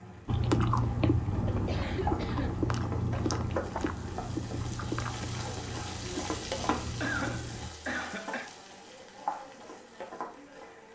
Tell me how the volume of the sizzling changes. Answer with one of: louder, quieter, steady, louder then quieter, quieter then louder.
steady.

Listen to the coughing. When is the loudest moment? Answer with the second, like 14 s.
7 s.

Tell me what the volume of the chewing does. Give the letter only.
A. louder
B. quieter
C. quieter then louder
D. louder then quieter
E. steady
B.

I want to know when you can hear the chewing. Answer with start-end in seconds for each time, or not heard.
0.2-7.7.